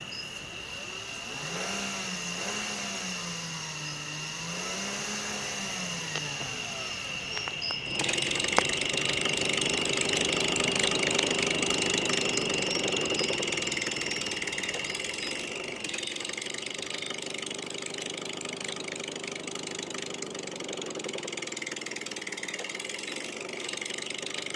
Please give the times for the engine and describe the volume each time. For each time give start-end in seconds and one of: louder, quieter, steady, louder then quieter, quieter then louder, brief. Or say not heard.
0.0-24.5 louder then quieter.